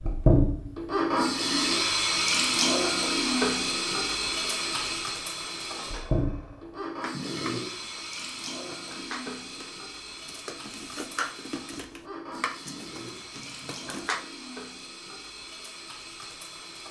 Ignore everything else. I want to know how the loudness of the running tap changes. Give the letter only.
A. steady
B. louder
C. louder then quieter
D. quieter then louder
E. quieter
E.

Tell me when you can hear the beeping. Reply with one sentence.
The beeping can't be heard in this clip.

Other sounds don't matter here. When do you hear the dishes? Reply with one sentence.
You can hear the dishes from 5.8 to 14.2 s.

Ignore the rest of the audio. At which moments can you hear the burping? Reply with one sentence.
The burping can be heard from 2.1 to 2.7 s, from 7.1 to 7.7 s and from 12.7 to 13.2 s.